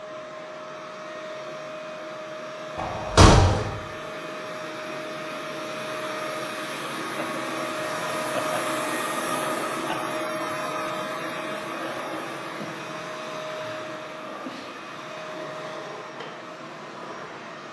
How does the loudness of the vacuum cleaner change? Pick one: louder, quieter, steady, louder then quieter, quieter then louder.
louder then quieter.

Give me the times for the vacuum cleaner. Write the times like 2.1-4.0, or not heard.
0.0-17.6.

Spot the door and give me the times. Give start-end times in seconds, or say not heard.
2.8-3.6.